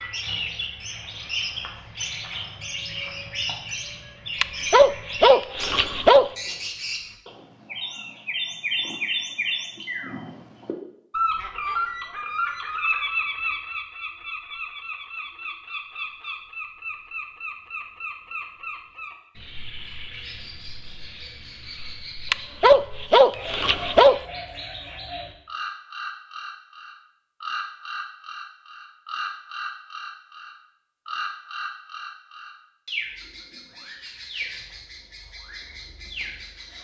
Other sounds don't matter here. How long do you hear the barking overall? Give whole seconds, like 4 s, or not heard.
4 s.